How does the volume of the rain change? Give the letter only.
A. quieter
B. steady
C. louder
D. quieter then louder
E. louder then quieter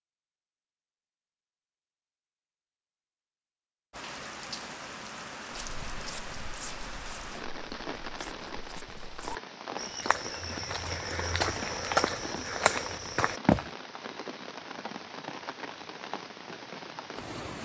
B.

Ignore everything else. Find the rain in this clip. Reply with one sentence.
The rain can be heard from 3.9 to 17.5 s.